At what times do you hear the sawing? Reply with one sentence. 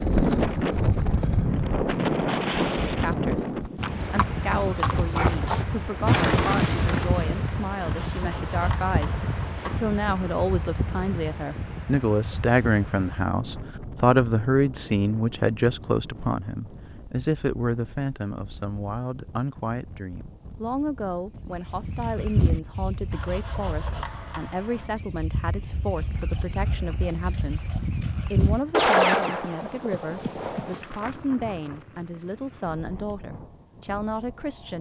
You can hear the sawing from 7.8 to 9.8 s and from 23.1 to 24.9 s.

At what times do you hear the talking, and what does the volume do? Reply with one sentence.
The talking can be heard from 2.9 to 34.7 s, getting louder then quieter.